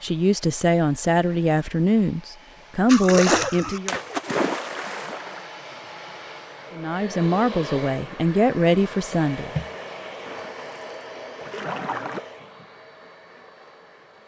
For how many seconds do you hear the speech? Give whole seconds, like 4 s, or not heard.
7 s.